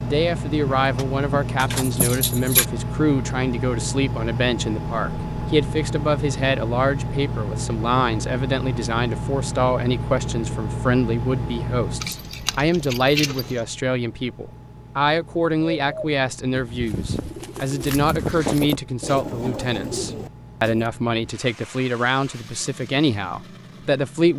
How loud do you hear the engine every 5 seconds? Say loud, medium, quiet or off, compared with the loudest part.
loud, loud, loud, quiet, quiet.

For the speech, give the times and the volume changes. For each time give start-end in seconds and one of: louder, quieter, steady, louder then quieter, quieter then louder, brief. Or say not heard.
0.0-24.3 steady.